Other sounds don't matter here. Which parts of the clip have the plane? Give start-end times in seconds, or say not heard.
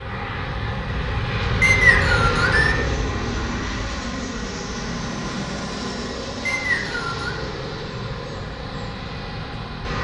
0.0-9.9.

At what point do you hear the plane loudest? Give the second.
2 s.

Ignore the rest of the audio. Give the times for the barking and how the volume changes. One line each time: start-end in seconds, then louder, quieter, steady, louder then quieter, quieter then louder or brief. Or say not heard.
not heard.